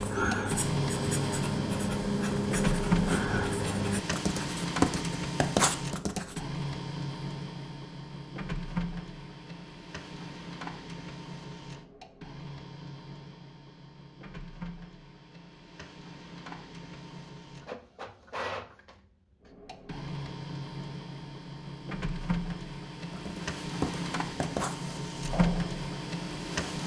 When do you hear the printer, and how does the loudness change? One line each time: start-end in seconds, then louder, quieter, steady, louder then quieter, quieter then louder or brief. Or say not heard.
0.1-26.8 quieter then louder.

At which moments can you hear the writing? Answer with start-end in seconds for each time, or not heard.
0.0-6.4, 23.1-26.8.